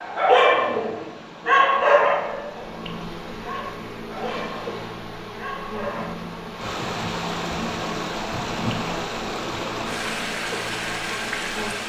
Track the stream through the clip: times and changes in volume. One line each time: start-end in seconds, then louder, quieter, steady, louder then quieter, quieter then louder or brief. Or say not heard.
0.0-11.8 louder.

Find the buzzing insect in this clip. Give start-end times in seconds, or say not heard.
0.0-11.8.